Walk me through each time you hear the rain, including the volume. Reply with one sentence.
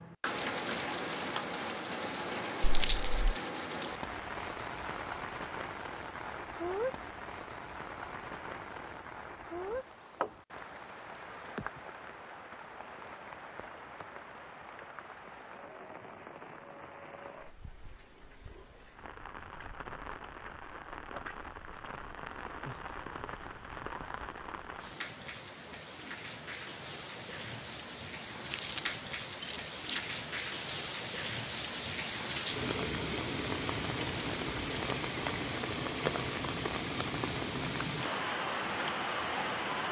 You can hear the rain from 0.0 to 39.8 s, getting quieter then louder.